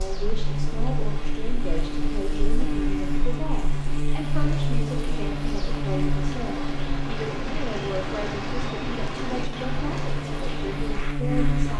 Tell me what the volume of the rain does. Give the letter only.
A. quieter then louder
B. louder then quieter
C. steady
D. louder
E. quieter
D.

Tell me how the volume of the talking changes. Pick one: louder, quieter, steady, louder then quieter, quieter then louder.
steady.